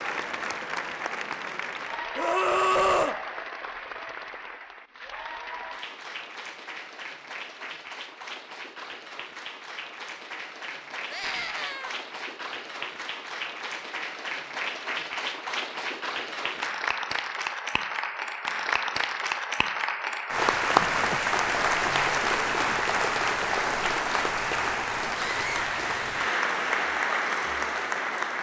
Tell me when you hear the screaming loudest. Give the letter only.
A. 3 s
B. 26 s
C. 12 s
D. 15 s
A.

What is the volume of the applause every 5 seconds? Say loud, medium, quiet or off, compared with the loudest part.
medium, quiet, medium, medium, loud, loud.